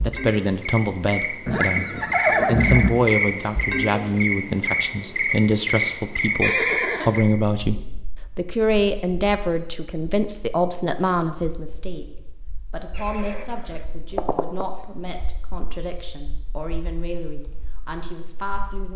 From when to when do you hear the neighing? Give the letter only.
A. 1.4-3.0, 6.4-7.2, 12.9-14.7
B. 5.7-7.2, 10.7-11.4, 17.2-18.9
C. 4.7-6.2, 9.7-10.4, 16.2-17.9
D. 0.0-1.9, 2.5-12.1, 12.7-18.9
A.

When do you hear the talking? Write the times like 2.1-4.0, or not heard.
0.0-1.9, 2.5-12.1, 12.7-18.9.